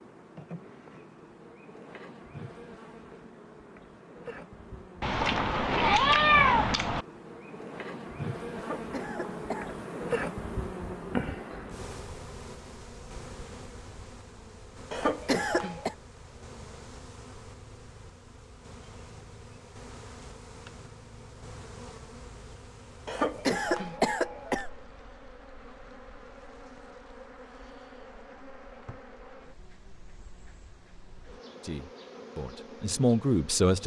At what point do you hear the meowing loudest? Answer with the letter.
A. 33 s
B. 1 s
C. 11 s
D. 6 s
D.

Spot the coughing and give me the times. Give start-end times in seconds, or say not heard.
8.6-9.8, 14.9-15.9, 23.1-24.7.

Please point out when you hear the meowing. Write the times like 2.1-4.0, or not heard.
5.0-7.0.